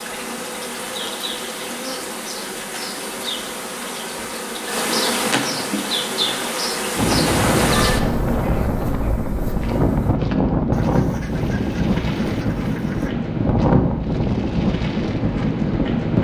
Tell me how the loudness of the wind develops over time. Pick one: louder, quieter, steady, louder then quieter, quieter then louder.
steady.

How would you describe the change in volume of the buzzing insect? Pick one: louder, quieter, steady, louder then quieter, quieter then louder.
louder then quieter.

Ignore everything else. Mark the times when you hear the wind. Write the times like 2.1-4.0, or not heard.
7.0-16.1.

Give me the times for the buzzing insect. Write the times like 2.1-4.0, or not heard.
0.0-10.2.